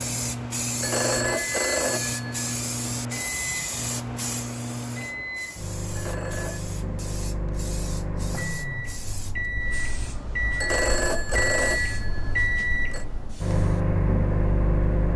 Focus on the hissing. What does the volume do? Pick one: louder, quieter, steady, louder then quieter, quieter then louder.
quieter.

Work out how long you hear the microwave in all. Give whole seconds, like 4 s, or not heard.
15 s.